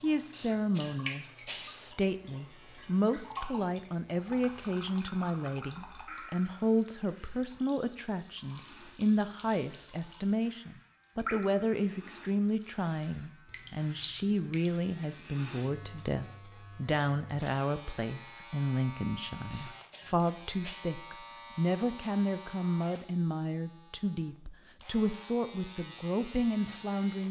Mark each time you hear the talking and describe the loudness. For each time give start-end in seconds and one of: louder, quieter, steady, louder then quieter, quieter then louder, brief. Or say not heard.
0.0-27.2 steady.